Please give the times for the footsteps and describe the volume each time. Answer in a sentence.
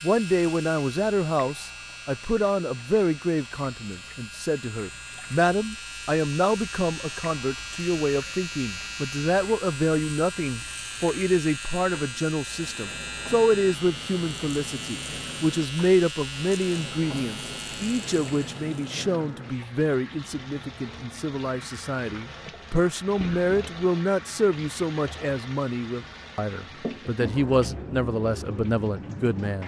You can't hear the footsteps here.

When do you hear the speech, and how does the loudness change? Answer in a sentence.
You can hear the speech from 0.0 to 29.6 s, at a steady volume.